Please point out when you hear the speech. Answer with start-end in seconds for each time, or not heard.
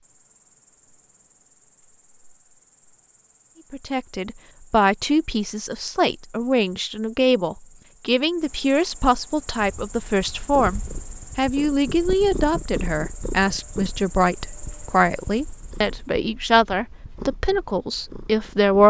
3.7-18.8.